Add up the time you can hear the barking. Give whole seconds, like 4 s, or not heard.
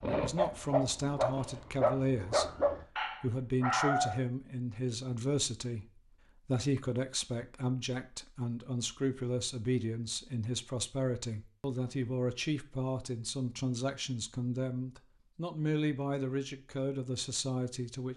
4 s.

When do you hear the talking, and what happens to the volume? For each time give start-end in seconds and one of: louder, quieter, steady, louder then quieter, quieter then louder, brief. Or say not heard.
0.1-2.5 brief
3.2-18.1 steady.